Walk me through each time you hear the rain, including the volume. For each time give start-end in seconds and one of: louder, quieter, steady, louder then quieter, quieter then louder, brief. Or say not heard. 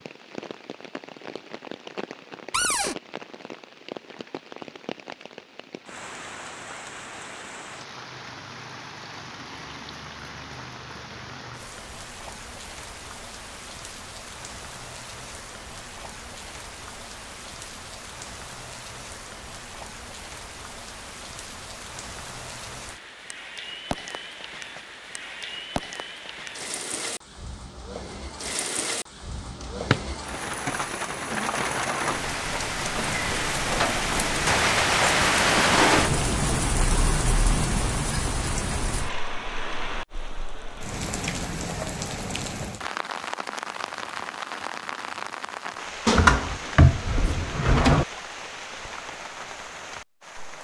0.0-50.5 louder then quieter.